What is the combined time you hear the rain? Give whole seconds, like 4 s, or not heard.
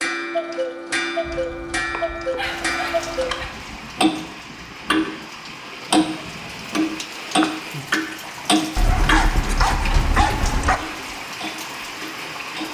10 s.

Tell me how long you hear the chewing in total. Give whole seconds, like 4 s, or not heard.
not heard.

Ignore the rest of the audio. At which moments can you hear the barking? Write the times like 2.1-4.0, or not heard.
1.2-3.8, 8.8-10.8.